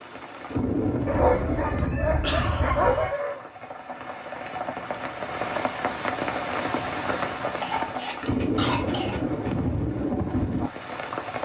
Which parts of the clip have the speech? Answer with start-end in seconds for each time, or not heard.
not heard.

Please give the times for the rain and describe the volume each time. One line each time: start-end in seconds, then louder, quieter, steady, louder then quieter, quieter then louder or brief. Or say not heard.
0.0-11.4 quieter then louder.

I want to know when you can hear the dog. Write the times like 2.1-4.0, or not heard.
1.1-3.5, 8.0-9.8.